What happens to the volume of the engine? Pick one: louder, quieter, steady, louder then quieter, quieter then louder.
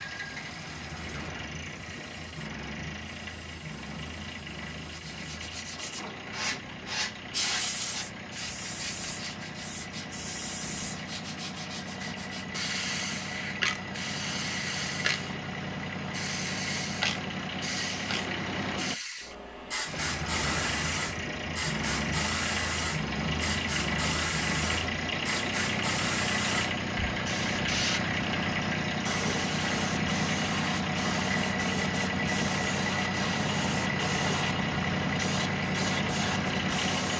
louder.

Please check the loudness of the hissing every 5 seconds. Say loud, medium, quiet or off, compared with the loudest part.
quiet, loud, loud, loud, loud, loud, loud, loud.